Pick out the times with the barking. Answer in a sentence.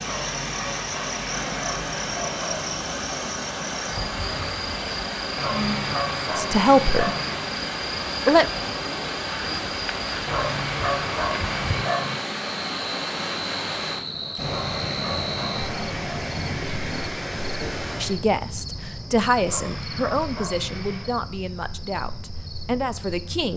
The barking can be heard from 0.0 to 2.7 s, from 5.3 to 7.4 s, from 10.2 to 12.2 s, from 14.4 to 16.2 s and from 19.4 to 21.1 s.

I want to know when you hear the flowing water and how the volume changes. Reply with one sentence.
You can hear the flowing water from 0.0 to 18.2 s, at a steady volume.